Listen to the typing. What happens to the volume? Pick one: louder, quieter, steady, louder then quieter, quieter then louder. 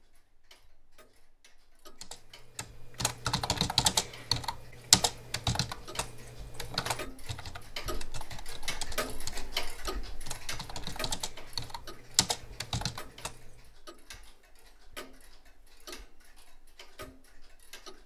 quieter then louder.